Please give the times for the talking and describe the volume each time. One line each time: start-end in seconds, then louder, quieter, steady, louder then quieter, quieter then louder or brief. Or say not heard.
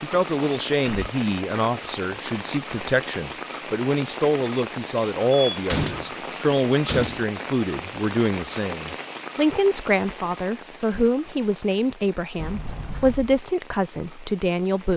0.0-14.9 steady.